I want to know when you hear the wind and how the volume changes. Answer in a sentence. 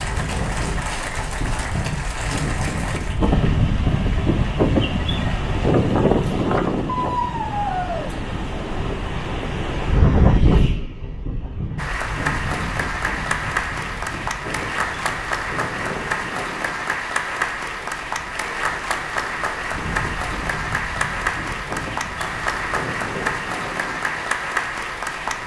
You can hear the wind from 0.0 to 25.4 s, getting quieter.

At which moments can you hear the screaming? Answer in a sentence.
You can hear the screaming from 6.8 to 8.1 s.